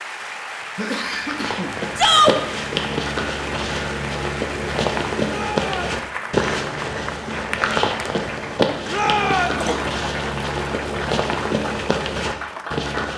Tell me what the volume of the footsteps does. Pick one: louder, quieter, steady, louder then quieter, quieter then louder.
steady.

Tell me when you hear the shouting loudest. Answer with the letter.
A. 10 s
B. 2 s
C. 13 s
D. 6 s
B.